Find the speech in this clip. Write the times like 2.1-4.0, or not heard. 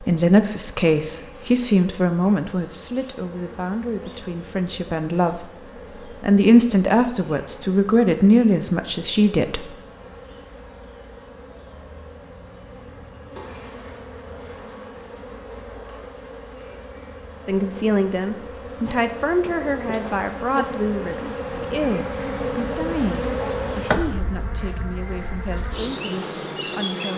0.0-9.8, 17.4-27.1.